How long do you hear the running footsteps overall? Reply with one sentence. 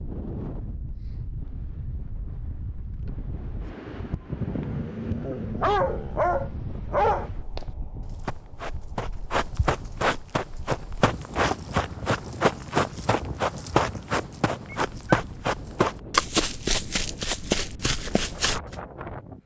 You can hear the running footsteps for 11 seconds altogether.